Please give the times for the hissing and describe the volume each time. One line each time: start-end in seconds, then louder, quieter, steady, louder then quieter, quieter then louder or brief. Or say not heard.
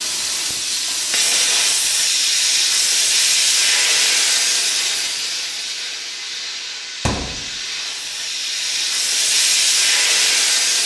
0.0-10.8 quieter then louder.